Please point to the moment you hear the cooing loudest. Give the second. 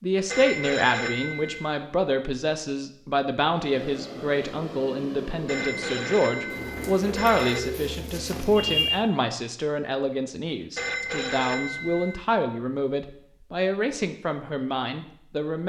9 s.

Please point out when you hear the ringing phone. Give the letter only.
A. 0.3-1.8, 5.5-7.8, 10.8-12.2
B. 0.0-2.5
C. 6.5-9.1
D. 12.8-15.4
A.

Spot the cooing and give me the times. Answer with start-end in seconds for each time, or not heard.
6.5-9.1.